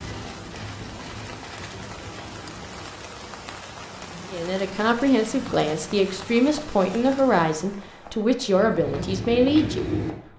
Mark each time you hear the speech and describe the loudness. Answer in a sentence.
You can hear the speech from 4.2 to 10.3 s, at a steady volume.